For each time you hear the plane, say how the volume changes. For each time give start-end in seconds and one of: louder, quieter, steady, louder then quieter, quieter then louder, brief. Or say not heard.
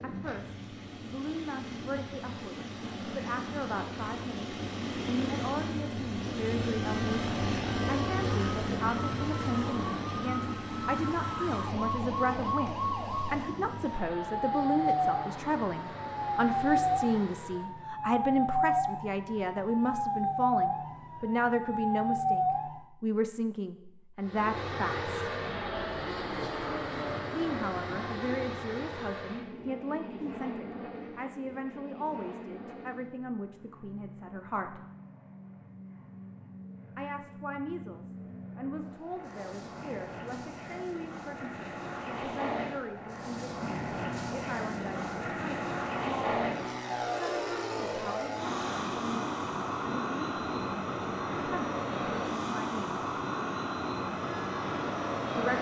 0.0-17.8 louder then quieter
24.2-55.5 quieter then louder.